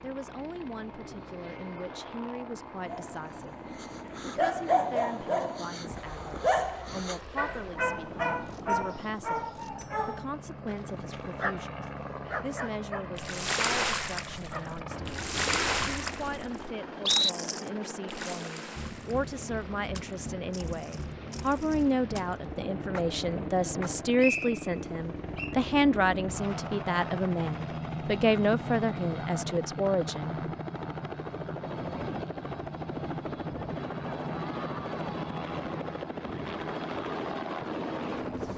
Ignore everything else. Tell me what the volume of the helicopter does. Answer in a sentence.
The volume of the helicopter goes up.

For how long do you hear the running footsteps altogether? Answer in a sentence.
The running footsteps can't be heard in this clip.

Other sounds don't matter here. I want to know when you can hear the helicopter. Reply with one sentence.
You can hear the helicopter from 0.0 to 38.5 s.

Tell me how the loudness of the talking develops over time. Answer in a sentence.
The volume of the talking goes up.